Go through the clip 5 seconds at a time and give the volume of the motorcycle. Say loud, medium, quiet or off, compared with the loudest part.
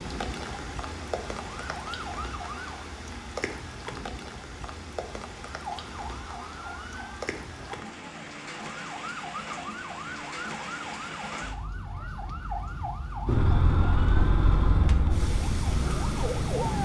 off, off, loud, medium.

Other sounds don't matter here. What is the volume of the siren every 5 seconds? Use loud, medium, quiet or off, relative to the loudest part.
medium, medium, medium, loud.